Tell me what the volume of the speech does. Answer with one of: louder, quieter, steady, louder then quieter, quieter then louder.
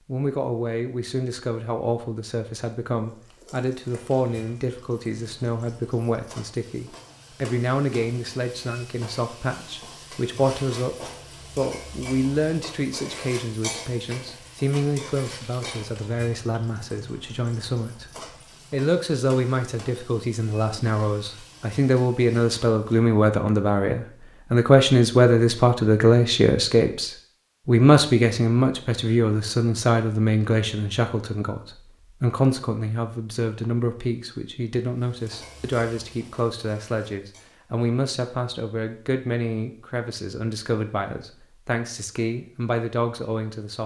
louder then quieter.